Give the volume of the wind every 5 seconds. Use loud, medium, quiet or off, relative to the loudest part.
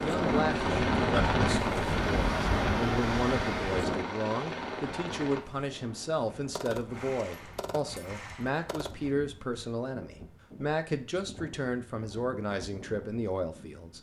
loud, quiet, quiet.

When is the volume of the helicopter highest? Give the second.
1 s.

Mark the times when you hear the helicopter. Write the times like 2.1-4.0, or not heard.
0.0-5.4.